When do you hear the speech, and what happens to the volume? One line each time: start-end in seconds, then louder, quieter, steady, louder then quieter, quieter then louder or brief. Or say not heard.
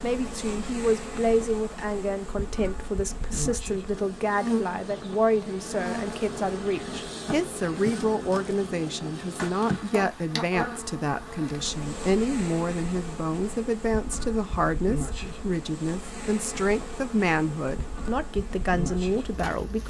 0.0-19.8 steady.